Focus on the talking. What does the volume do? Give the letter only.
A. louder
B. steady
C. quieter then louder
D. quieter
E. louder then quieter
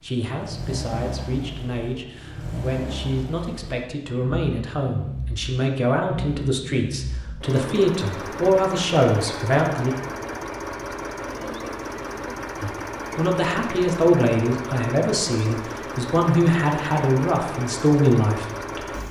A.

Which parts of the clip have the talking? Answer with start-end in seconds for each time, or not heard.
0.0-9.9, 12.6-19.0.